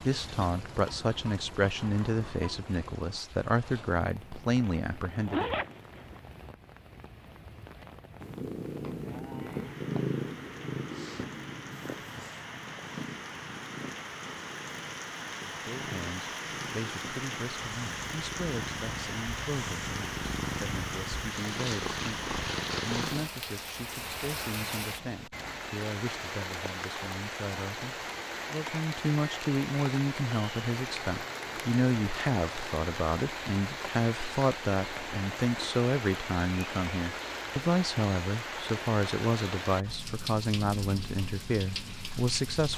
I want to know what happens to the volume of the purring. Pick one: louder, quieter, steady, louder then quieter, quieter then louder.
quieter then louder.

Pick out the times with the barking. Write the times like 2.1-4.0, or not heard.
not heard.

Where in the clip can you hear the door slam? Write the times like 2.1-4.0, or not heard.
not heard.